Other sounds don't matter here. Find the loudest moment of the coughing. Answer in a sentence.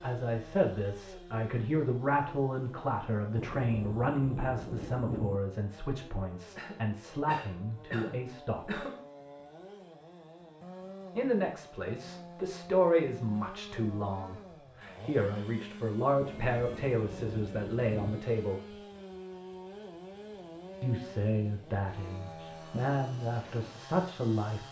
The volume of the coughing peaks at 9 seconds.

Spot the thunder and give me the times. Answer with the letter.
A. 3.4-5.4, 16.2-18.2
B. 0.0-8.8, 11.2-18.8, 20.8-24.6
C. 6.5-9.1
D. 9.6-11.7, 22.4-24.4
A.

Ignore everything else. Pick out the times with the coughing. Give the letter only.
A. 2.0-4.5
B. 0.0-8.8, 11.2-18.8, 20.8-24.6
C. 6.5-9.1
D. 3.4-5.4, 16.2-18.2
C.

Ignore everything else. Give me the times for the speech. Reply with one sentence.
The speech can be heard from 0.0 to 8.8 s, from 11.2 to 18.8 s and from 20.8 to 24.6 s.